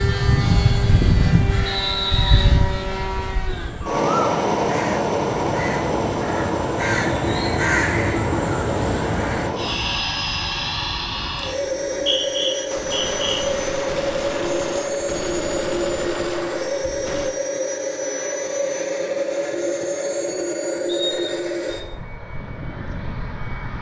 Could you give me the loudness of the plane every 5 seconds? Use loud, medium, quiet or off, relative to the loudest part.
loud, loud, loud, loud, medium.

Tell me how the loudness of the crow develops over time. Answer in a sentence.
The loudness of the crow goes up.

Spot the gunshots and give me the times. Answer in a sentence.
The gunshots can be heard from 12.7 to 17.4 s.